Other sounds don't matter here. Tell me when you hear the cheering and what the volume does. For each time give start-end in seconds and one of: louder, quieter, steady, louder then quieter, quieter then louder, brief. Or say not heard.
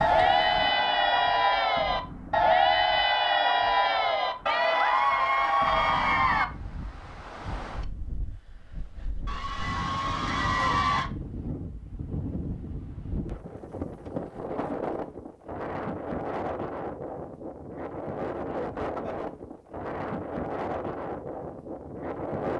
0.0-6.5 steady
9.2-11.1 brief.